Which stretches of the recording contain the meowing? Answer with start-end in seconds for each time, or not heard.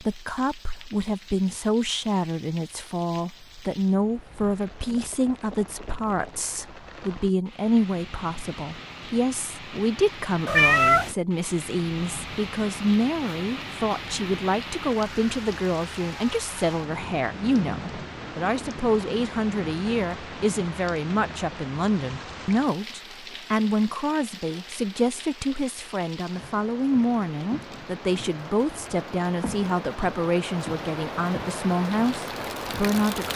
10.4-11.2.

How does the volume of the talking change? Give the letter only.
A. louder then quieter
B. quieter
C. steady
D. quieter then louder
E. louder
C.